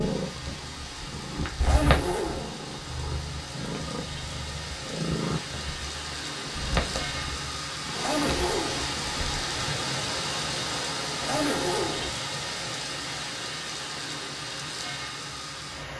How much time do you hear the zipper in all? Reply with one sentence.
You can hear the zipper for 3 seconds altogether.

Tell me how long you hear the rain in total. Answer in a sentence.
The rain can be heard for 16 seconds in total.